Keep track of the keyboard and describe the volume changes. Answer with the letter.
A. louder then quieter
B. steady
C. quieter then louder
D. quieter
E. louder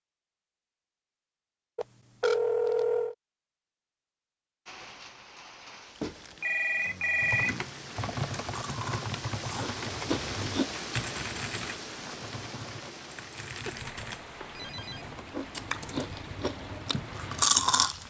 D.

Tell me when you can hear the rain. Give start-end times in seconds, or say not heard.
4.7-18.0.